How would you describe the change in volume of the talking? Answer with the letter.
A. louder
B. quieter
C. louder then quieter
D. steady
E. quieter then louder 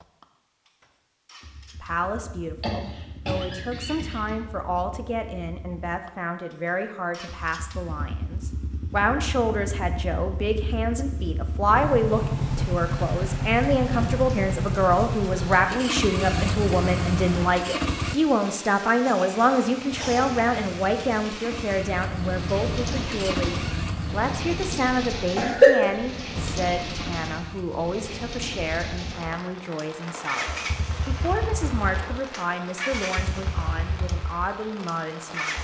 C.